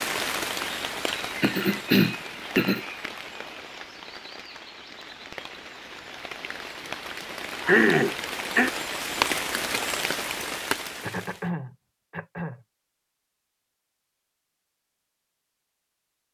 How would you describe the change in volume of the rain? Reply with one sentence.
The loudness of the rain goes down, then up.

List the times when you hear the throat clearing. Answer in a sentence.
You can hear the throat clearing from 1.4 to 2.8 s, from 7.7 to 8.7 s and from 11.0 to 12.6 s.